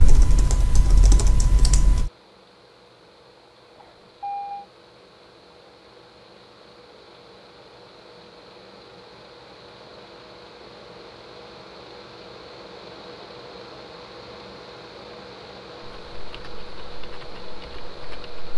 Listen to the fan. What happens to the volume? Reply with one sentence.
The volume of the fan goes up.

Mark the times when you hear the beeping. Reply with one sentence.
You can hear the beeping from 3.8 to 4.7 s.